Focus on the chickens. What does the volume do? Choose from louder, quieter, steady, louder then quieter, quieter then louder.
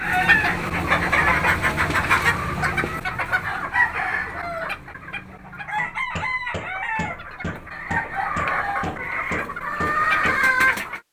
quieter then louder.